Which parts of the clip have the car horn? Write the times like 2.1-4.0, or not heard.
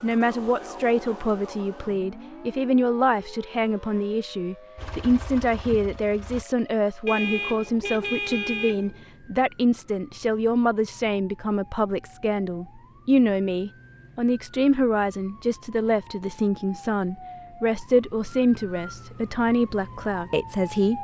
7.0-9.1.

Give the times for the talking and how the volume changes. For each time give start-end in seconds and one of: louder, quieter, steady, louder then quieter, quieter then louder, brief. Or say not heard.
0.0-21.0 steady.